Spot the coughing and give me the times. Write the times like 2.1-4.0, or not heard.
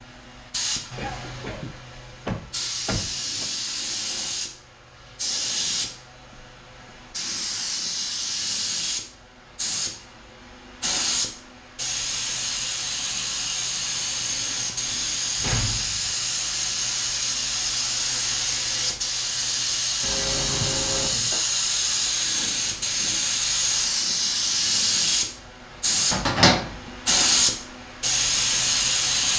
0.9-1.7, 20.0-21.4.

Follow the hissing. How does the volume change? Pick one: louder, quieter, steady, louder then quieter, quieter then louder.
louder.